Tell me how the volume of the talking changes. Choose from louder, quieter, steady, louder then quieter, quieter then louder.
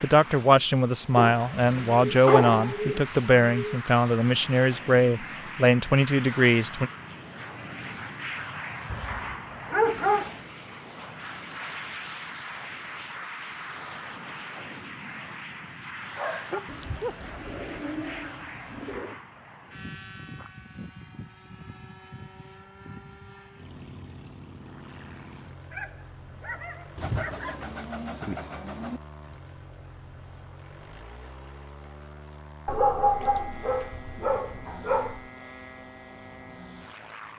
steady.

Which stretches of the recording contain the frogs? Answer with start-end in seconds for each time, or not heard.
not heard.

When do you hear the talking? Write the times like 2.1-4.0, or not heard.
0.0-6.9.